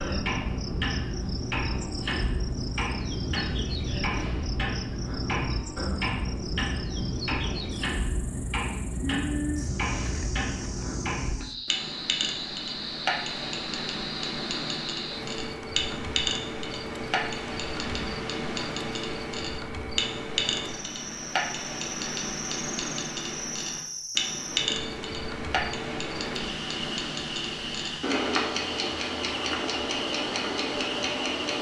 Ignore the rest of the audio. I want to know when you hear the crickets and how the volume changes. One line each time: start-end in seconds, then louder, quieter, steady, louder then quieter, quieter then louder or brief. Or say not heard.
0.0-31.5 steady.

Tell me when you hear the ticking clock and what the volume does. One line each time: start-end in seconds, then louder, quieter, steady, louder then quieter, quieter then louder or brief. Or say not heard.
0.0-31.5 steady.